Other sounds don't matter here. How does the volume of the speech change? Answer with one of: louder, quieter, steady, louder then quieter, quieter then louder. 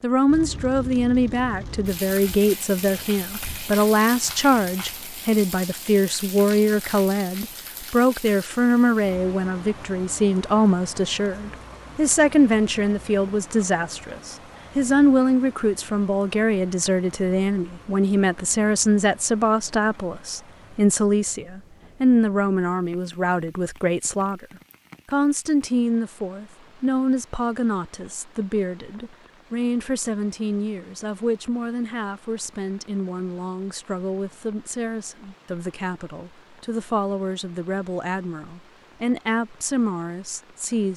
quieter.